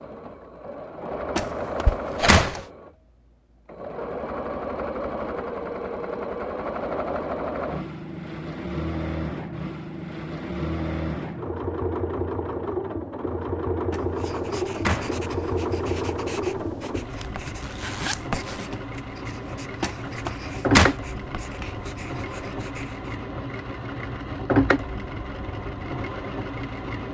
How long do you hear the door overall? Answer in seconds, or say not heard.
4 s.